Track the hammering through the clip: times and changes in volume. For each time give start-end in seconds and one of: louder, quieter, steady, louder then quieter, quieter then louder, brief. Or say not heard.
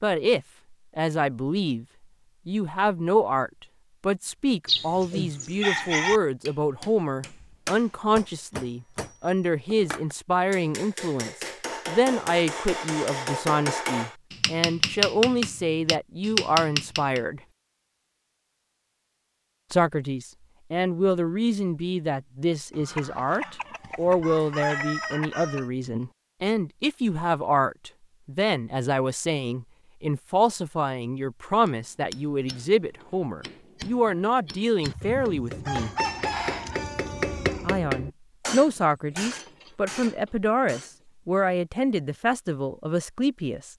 5.7-17.2 louder
31.6-41.0 louder then quieter.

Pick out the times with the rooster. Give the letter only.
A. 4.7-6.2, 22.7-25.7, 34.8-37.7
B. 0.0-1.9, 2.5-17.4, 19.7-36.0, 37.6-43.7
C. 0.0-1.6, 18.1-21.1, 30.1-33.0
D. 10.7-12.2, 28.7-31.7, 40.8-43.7
A.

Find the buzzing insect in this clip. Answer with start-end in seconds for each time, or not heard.
not heard.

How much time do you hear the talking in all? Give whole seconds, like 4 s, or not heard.
39 s.